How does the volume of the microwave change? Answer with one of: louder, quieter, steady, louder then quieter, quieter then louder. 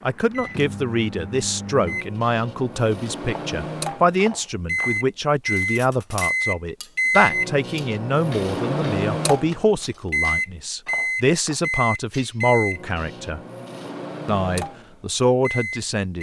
louder then quieter.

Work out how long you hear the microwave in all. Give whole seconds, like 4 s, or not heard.
16 s.